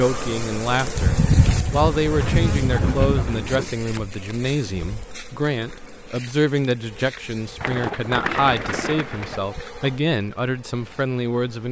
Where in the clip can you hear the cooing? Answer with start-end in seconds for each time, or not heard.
0.9-3.7, 7.6-9.4.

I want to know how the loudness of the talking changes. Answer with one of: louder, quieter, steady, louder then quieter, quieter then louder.
steady.